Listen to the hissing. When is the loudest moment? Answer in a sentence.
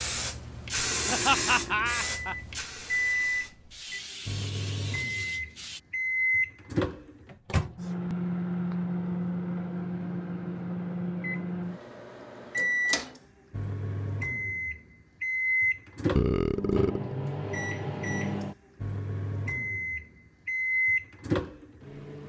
The volume of the hissing peaks at 1 second.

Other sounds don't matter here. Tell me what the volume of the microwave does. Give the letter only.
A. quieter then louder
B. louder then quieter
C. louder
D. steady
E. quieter
D.